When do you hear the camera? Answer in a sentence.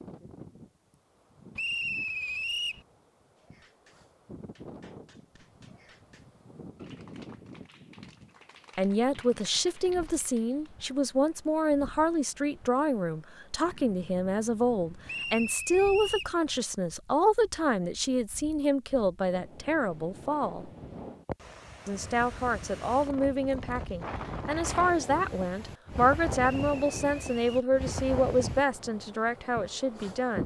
The camera can't be heard in this clip.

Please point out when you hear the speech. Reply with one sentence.
The speech can be heard from 8.8 to 20.7 s and from 21.9 to 30.4 s.